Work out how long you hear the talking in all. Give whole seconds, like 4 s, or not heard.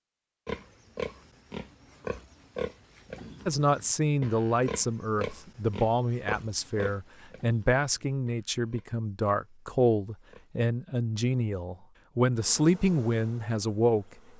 11 s.